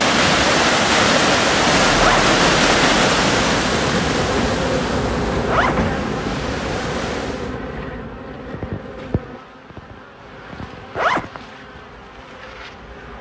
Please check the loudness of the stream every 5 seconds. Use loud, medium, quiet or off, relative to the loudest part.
loud, quiet, off.